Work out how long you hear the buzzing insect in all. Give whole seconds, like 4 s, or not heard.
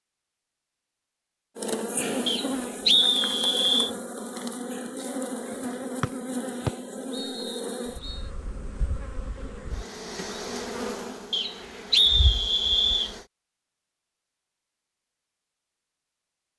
12 s.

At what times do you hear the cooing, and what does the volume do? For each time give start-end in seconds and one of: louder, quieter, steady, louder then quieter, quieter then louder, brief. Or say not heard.
not heard.